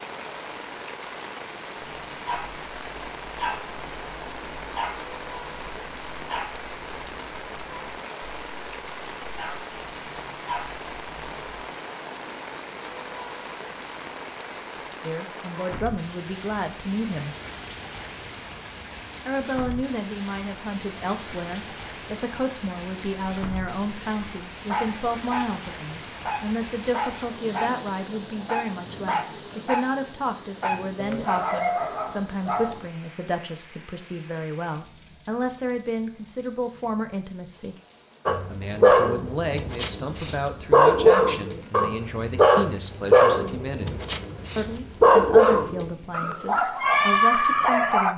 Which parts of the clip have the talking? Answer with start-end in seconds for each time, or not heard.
15.0-17.4, 19.2-37.8, 38.5-48.1.